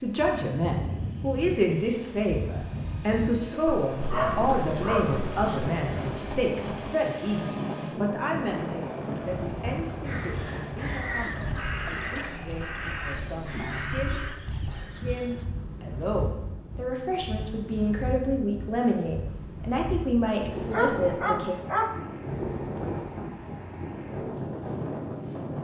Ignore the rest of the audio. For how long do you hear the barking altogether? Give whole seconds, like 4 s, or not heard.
4 s.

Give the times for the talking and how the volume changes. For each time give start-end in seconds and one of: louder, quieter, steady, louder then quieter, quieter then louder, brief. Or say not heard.
0.0-21.6 quieter then louder.